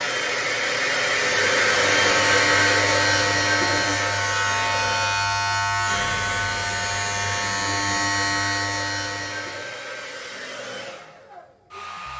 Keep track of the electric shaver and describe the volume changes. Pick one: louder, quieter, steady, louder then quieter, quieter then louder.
steady.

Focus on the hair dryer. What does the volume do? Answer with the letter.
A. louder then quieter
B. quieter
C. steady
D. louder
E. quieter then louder
B.